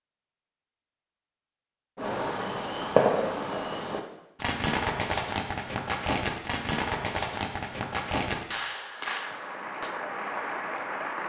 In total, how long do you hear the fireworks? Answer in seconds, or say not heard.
8 s.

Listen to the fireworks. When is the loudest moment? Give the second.
3 s.